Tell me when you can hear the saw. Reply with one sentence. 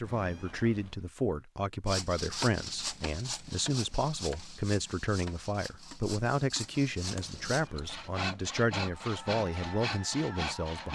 You can hear the saw from 1.9 to 10.8 s.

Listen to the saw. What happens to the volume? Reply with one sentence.
The loudness of the saw goes down, then up.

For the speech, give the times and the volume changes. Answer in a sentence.
You can hear the speech from 0.0 to 10.8 s, at a steady volume.